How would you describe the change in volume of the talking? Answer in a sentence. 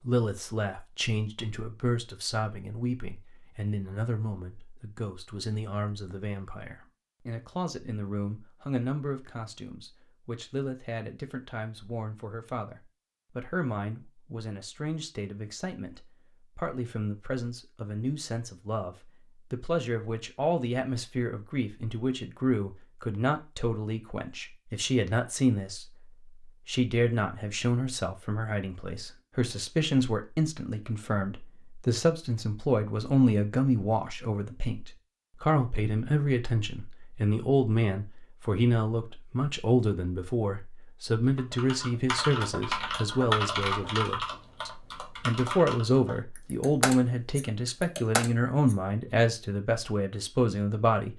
The loudness of the talking goes up.